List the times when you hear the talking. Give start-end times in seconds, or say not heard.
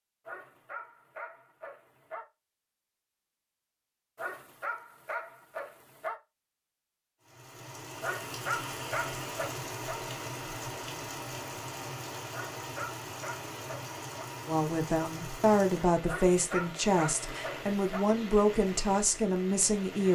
14.4-20.1.